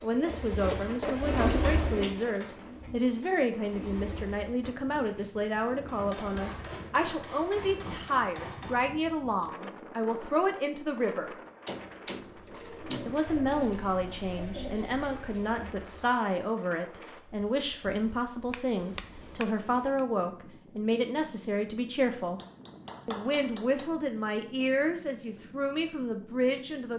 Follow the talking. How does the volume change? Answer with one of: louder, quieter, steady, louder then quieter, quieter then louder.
steady.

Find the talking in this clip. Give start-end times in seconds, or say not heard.
0.0-11.3, 13.1-22.4, 23.1-26.9.